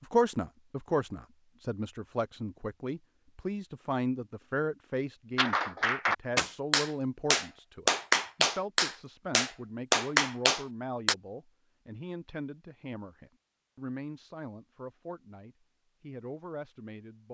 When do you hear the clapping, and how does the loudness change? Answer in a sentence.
You can hear the clapping from 5.3 to 11.2 s, at a steady volume.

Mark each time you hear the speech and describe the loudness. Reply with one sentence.
The speech can be heard from 0.0 to 17.2 s, getting quieter.